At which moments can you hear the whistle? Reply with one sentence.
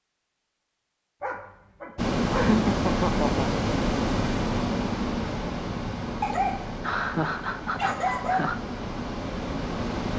You can't hear the whistle here.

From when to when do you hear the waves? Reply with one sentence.
The waves can be heard from 1.9 to 10.1 s.